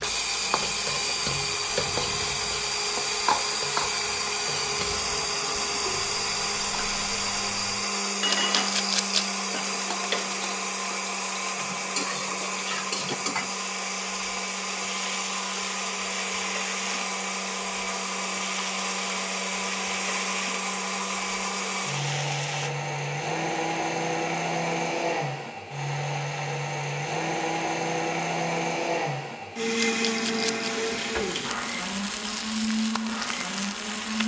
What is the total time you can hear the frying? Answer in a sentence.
The frying can be heard for 26 seconds in total.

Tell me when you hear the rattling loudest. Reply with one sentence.
The volume of the rattling peaks at 9 seconds.